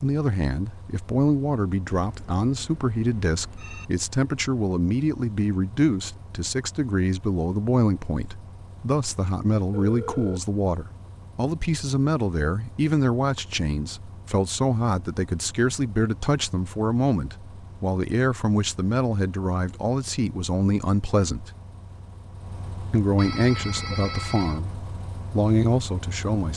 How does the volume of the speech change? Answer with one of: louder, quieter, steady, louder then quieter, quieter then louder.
steady.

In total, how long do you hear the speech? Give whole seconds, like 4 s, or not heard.
25 s.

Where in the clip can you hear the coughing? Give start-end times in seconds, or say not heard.
not heard.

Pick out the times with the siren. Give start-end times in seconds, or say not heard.
not heard.